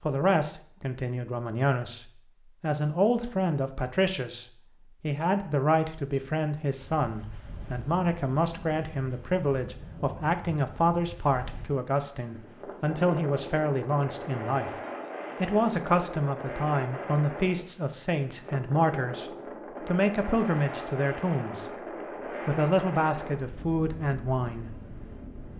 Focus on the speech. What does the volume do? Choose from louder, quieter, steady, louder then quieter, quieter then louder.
steady.